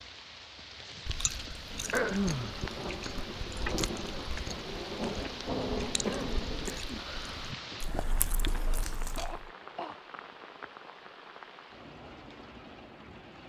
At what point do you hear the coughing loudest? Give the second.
2 s.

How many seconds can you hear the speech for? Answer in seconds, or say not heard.
not heard.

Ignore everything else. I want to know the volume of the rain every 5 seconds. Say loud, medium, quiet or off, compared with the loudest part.
loud, loud, medium.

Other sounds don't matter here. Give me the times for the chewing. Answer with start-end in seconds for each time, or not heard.
1.1-9.5.